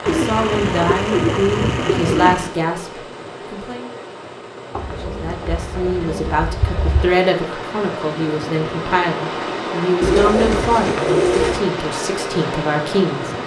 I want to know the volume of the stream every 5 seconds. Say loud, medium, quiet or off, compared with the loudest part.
medium, loud, loud.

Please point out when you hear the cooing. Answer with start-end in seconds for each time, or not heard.
0.1-2.5, 4.7-7.0, 10.0-11.6.